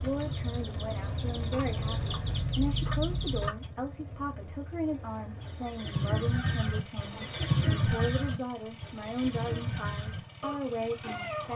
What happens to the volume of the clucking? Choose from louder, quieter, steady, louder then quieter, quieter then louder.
louder then quieter.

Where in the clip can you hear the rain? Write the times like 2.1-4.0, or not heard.
not heard.